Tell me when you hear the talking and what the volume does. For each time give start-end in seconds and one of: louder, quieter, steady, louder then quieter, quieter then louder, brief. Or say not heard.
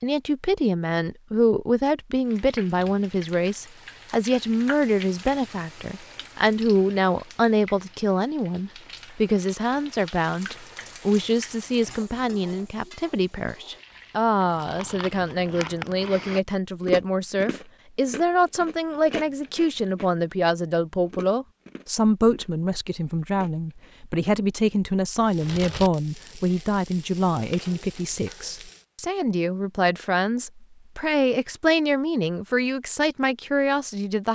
0.0-34.3 steady.